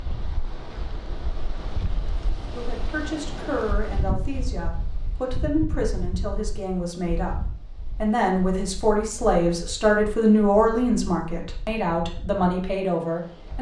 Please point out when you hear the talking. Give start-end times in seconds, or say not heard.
2.5-13.5.